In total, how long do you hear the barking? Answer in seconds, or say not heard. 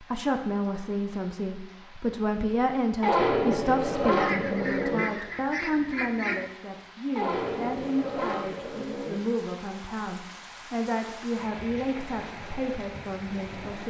4 s.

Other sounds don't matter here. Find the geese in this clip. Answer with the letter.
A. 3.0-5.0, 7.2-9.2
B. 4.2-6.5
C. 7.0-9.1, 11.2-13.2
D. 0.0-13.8
B.